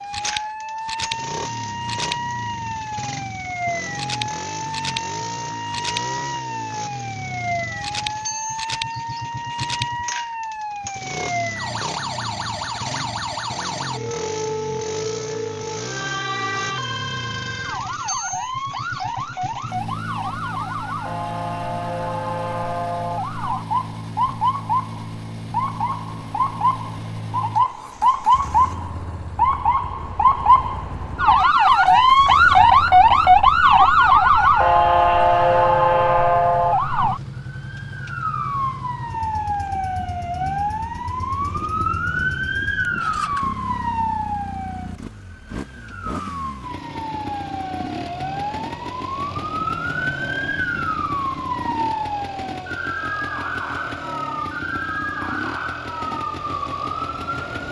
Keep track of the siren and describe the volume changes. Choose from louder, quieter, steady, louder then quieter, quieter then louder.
louder then quieter.